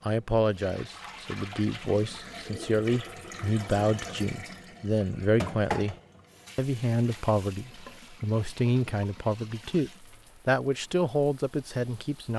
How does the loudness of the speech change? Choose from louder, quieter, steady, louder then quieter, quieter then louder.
steady.